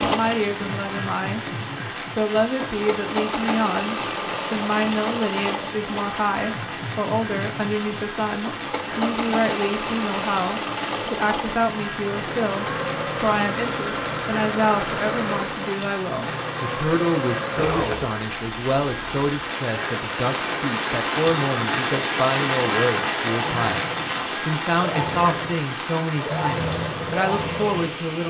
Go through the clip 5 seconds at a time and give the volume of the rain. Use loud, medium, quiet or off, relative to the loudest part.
medium, medium, medium, medium, loud, medium.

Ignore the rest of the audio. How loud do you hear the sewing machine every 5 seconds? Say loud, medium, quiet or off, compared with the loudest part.
loud, loud, loud, loud, medium, loud.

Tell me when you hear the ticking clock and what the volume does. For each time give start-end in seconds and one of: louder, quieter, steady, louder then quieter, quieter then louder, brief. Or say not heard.
not heard.